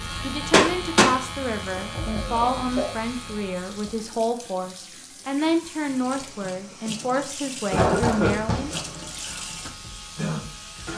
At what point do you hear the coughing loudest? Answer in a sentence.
The loudest moment of the coughing is at 8 seconds.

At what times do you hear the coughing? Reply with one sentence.
You can hear the coughing from 2.0 to 2.9 s and from 7.7 to 8.8 s.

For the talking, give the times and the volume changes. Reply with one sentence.
You can hear the talking from 0.2 to 8.8 s, at a steady volume.